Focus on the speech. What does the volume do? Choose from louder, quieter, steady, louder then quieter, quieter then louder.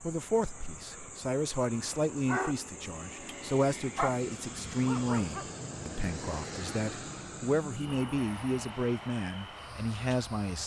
steady.